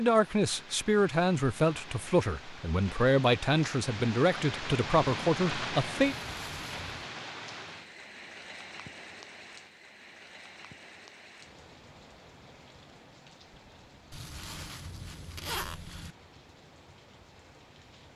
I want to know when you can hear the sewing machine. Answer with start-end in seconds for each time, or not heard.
not heard.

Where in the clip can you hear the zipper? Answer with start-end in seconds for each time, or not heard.
6.0-6.9, 14.1-16.1.